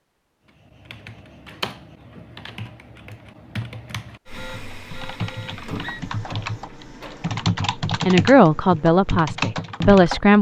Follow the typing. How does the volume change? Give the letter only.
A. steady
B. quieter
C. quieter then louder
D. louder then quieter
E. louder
E.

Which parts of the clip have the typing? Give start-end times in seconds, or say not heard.
0.6-10.3.